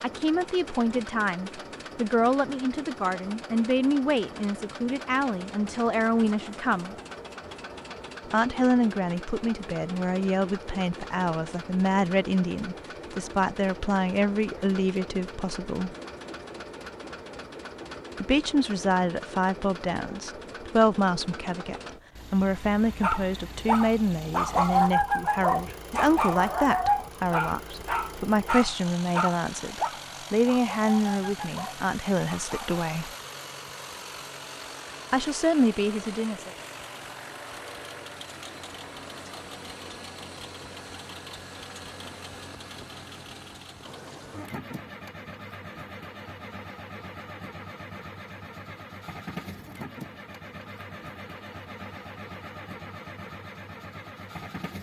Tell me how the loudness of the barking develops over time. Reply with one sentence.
The loudness of the barking goes down.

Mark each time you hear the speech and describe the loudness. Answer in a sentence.
The speech can be heard from 0.0 to 7.0 s, at a steady volume; from 8.3 to 15.9 s, at a steady volume; from 18.1 to 33.1 s, at a steady volume; and briefly from 35.1 to 36.5 s.